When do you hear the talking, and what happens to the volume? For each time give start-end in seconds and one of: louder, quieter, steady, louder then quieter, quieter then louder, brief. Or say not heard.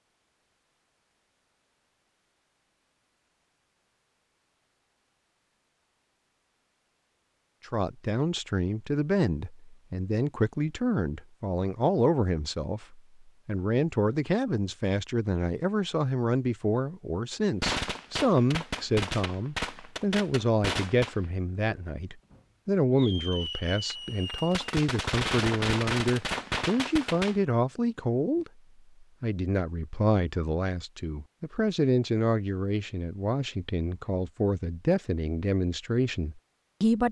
7.7-37.0 steady.